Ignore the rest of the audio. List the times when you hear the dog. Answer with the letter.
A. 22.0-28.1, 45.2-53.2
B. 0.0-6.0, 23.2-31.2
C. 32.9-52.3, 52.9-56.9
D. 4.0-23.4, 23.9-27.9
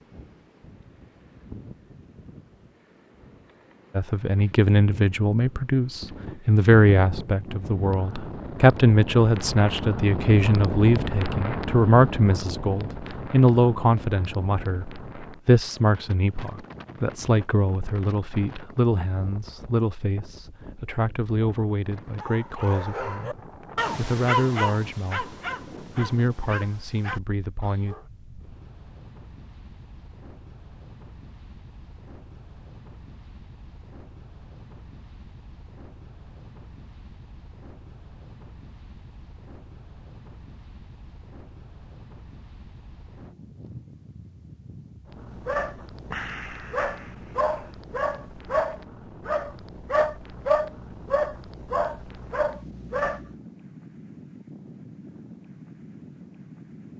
A.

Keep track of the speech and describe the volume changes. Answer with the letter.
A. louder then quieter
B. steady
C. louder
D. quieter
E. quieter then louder
D.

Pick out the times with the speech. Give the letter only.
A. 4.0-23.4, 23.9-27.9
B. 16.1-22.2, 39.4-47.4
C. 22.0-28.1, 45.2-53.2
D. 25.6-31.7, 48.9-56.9
A.